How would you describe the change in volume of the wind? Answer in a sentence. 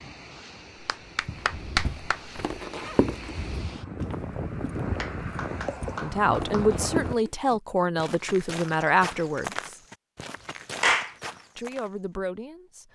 The volume of the wind goes up.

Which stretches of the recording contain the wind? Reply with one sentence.
The wind can be heard from 0.0 to 7.2 s.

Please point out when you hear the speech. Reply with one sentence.
You can hear the speech from 6.0 to 9.8 s and from 11.6 to 12.8 s.